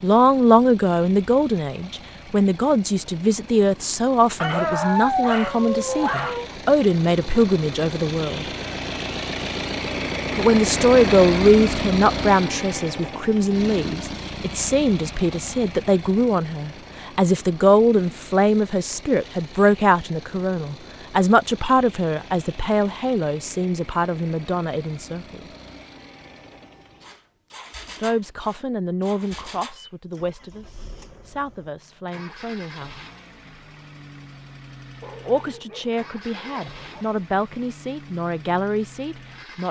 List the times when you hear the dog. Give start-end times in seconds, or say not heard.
4.4-6.5, 35.0-37.0.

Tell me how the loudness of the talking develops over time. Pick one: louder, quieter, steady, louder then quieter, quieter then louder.
quieter.